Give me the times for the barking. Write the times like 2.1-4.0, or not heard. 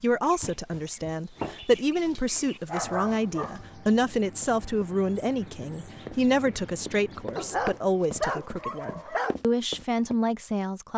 1.4-3.6, 7.3-9.3.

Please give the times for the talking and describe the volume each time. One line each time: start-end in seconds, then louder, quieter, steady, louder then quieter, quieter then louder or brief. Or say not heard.
0.0-10.9 steady.